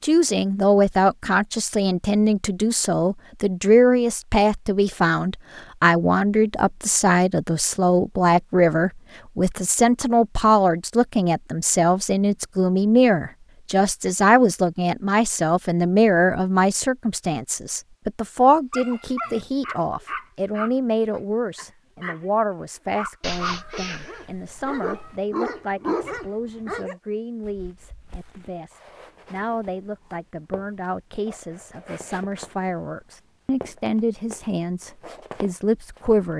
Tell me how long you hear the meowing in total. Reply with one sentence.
The meowing can be heard for 2 seconds in total.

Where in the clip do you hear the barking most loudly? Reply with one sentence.
The volume of the barking peaks at 26 seconds.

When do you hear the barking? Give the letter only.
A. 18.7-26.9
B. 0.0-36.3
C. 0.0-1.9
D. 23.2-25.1
A.